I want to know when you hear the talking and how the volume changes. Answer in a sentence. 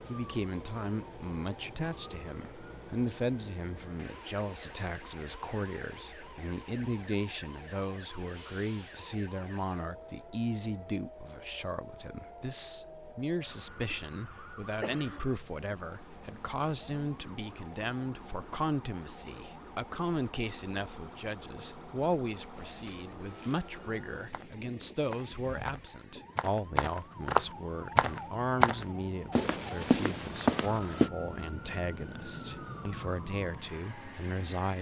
The talking can be heard from 0.1 to 34.7 s, at a steady volume.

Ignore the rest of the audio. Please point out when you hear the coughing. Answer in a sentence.
The coughing can be heard from 13.9 to 15.3 s.